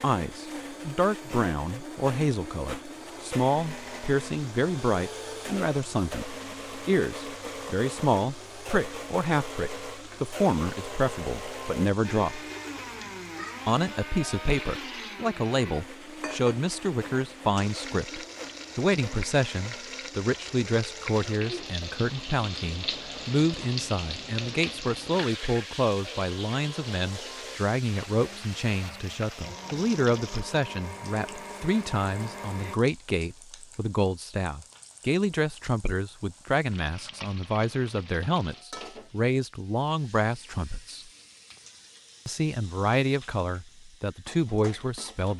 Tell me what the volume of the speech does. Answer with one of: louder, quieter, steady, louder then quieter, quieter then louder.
steady.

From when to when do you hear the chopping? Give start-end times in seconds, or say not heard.
not heard.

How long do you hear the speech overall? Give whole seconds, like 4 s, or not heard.
43 s.